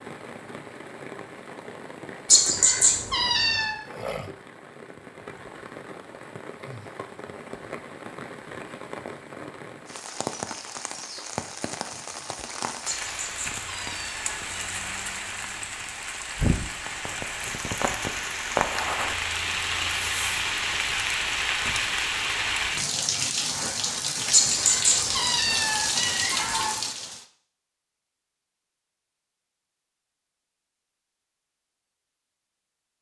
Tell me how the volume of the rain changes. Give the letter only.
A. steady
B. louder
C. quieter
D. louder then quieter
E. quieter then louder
B.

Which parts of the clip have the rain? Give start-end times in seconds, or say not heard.
0.0-27.2.